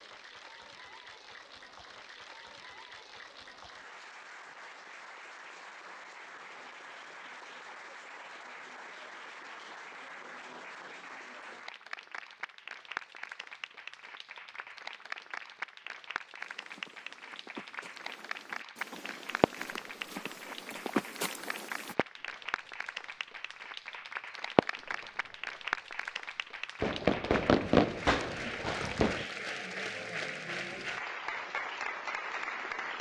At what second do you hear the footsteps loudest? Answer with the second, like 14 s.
21 s.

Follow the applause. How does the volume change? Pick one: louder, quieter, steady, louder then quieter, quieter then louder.
louder.